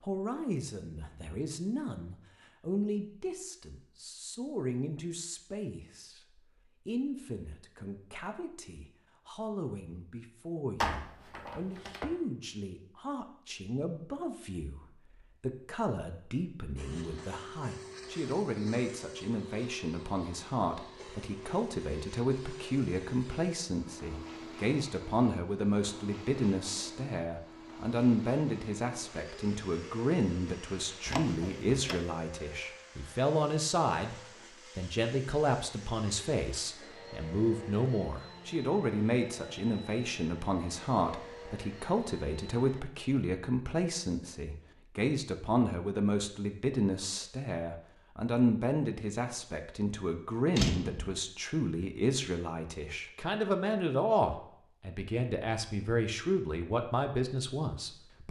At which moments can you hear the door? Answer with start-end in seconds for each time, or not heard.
10.8-12.1, 31.1-32.0, 50.5-51.1.